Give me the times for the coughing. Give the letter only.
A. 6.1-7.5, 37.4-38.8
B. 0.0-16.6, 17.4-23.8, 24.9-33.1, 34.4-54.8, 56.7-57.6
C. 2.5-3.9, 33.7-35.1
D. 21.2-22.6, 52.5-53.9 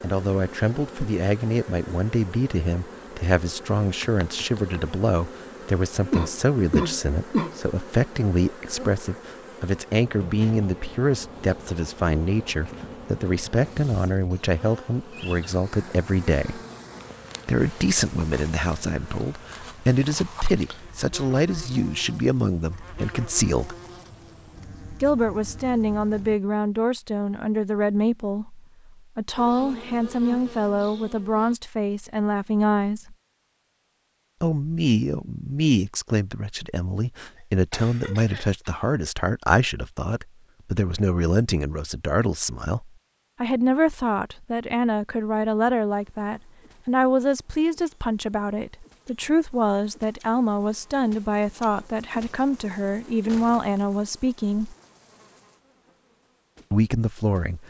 A.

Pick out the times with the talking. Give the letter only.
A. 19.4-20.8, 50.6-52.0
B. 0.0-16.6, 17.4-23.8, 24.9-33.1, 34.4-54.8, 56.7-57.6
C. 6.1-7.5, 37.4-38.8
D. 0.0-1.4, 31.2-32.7
B.